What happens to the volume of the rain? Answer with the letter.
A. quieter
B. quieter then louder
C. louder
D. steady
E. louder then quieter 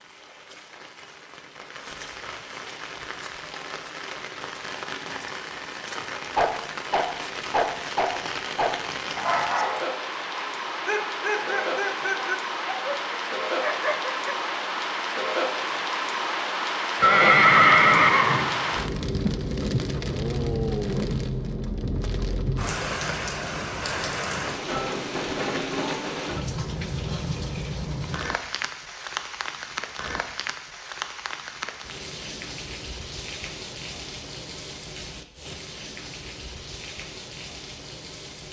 E.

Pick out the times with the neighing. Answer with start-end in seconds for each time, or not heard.
17.0-18.9.